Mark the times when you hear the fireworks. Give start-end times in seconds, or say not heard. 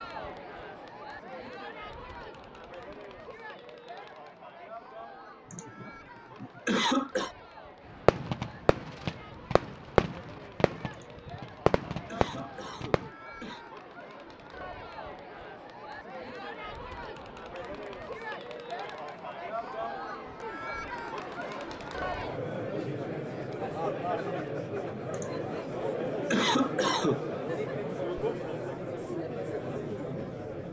8.1-13.1.